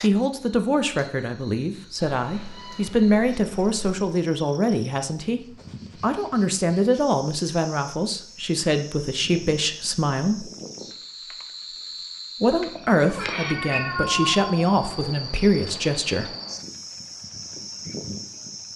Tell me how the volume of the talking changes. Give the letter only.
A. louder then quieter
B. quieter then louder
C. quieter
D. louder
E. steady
E.